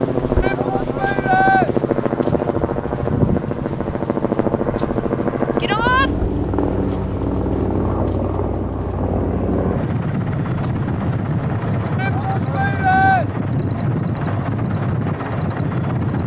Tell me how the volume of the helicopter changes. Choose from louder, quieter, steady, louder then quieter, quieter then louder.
steady.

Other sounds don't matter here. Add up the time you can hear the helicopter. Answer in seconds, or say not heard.
16 s.